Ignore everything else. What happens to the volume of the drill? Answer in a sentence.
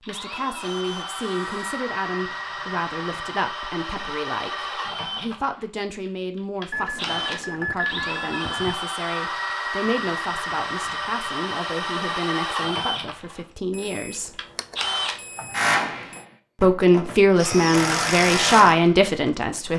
The volume of the drill goes up.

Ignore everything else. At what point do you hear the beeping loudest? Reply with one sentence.
The volume of the beeping peaks at 8 seconds.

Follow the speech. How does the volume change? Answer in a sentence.
The loudness of the speech goes up.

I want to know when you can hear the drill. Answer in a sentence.
The drill can be heard from 0.0 to 19.7 s.